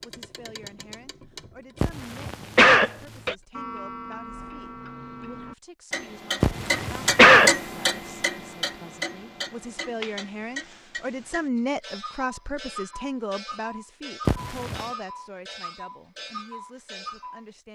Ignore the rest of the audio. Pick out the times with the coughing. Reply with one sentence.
You can hear the coughing from 1.8 to 3.4 s, from 6.4 to 7.5 s and from 14.2 to 14.8 s.